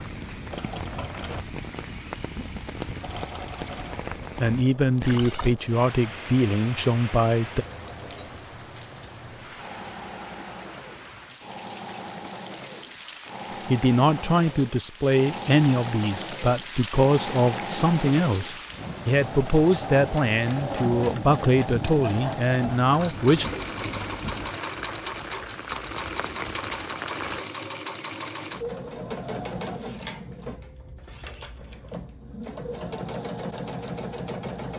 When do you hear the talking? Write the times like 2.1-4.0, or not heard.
4.4-7.7, 13.7-23.4.